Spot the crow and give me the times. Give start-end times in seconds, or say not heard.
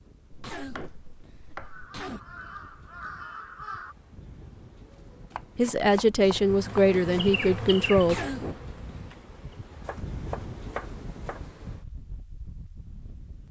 1.6-4.0.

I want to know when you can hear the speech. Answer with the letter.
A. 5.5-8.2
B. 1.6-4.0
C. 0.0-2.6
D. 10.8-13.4
A.